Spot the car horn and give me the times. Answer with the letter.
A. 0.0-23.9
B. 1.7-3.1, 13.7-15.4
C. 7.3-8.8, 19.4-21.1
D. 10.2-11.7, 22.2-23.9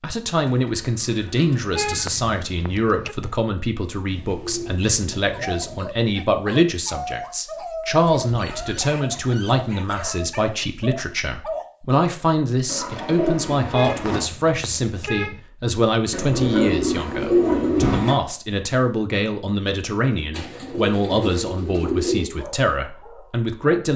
B.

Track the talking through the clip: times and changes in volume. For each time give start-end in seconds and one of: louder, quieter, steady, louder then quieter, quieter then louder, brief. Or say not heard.
0.0-23.9 steady.